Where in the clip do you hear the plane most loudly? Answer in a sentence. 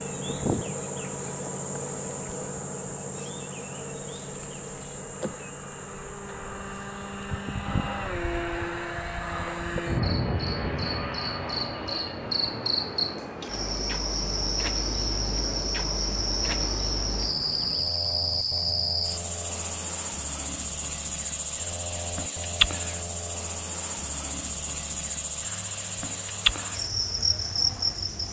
The loudest moment of the plane is at 10 seconds.